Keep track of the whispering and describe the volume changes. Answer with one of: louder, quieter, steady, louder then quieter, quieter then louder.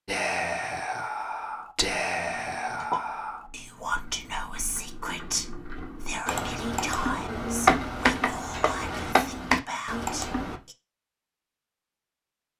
quieter.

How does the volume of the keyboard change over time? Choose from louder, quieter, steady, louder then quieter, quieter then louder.
quieter then louder.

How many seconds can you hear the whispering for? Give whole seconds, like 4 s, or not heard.
11 s.